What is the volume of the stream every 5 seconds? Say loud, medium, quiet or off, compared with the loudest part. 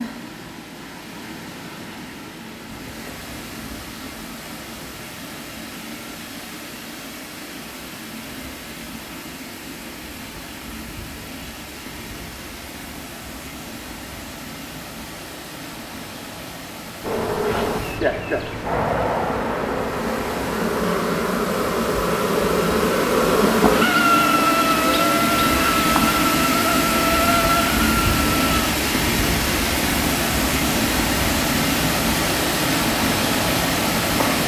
quiet, quiet, quiet, quiet, medium, loud, loud.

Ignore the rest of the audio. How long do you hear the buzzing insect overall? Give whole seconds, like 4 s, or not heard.
12 s.